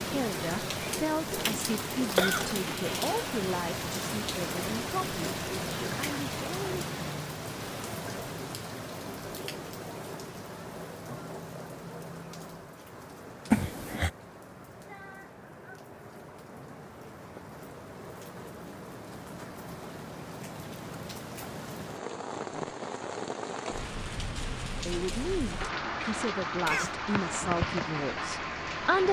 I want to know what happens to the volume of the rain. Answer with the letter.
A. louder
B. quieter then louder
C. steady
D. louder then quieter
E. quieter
B.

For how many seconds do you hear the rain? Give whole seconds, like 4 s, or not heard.
29 s.